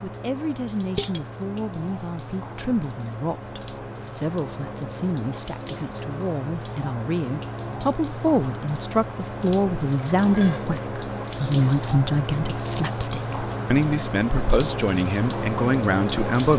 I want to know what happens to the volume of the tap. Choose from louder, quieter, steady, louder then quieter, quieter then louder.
louder.